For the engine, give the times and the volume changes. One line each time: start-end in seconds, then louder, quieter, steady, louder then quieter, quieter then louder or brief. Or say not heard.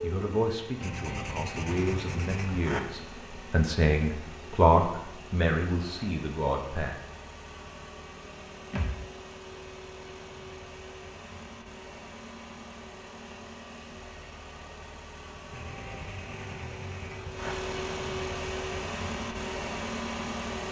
0.0-20.6 louder.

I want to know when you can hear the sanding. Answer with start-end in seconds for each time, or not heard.
0.8-2.8, 15.5-17.6.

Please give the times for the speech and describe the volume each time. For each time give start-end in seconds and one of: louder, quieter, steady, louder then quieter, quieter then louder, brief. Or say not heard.
0.0-7.0 louder then quieter.